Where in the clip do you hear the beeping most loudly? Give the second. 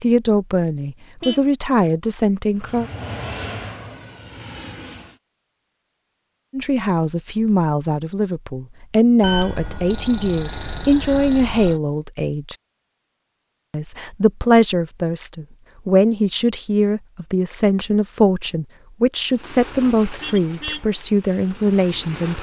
11 s.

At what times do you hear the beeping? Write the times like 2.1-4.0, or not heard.
9.2-11.8.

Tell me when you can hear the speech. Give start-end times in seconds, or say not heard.
0.0-2.9, 6.5-12.6, 13.7-22.3.